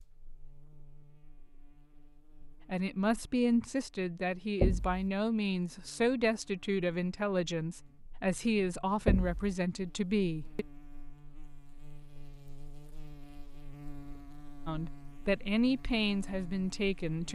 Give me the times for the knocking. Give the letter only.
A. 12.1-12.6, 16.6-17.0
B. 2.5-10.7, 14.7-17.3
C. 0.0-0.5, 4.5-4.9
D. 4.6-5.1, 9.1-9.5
D.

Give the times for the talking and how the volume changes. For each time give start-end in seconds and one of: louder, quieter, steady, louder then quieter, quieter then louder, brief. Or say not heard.
2.5-10.7 steady
14.7-17.3 brief.